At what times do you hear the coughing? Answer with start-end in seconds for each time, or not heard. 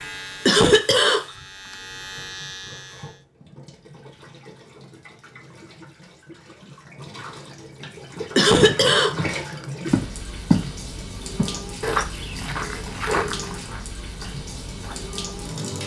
0.5-1.3, 8.3-9.2.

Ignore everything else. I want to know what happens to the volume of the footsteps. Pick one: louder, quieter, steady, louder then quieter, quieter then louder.
louder then quieter.